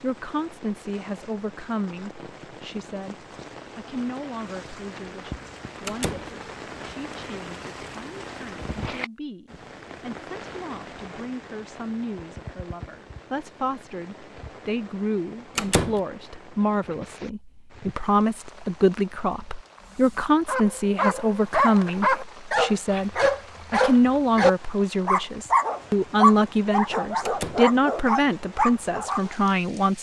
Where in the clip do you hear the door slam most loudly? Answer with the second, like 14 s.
16 s.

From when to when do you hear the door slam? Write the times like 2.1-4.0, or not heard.
5.8-6.3, 15.6-16.0, 27.2-27.7.